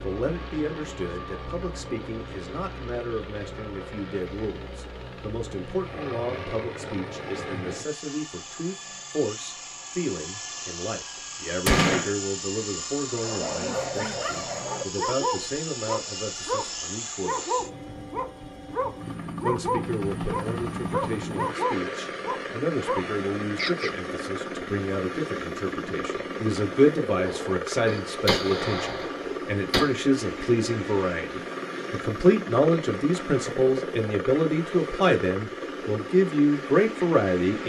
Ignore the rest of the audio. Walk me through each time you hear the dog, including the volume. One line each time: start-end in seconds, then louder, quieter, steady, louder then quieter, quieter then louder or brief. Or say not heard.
13.1-23.9 steady.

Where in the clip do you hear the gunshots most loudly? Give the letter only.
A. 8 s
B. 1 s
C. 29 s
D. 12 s
D.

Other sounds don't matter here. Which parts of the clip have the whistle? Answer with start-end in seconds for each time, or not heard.
not heard.